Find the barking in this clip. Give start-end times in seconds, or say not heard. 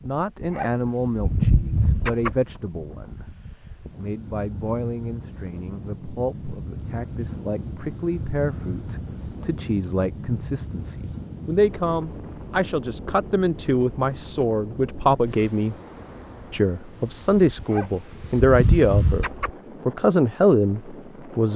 0.4-2.4, 17.6-19.5.